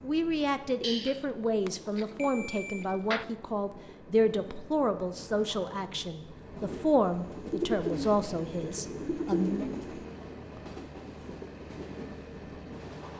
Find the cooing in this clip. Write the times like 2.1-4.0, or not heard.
0.8-3.2, 7.3-9.9.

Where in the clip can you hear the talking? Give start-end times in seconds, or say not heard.
0.0-9.7.